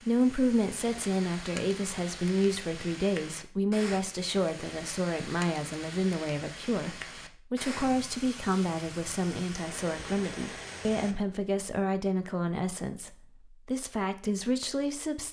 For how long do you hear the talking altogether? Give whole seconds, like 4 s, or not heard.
15 s.